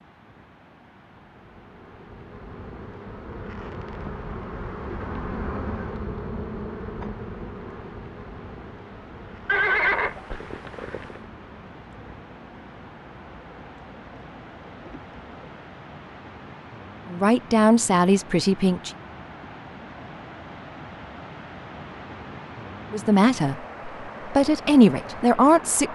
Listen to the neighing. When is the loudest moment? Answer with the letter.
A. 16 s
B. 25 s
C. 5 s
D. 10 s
D.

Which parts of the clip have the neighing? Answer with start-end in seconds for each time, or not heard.
9.4-11.2.